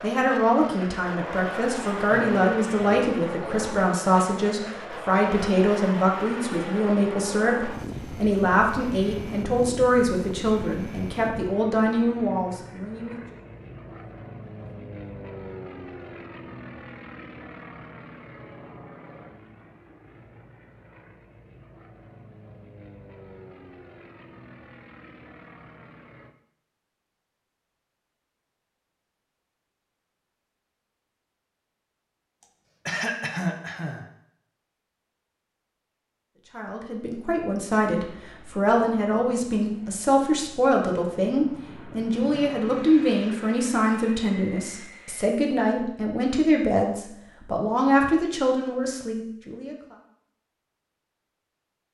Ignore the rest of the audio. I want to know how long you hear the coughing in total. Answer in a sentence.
The coughing can be heard for 3 seconds in total.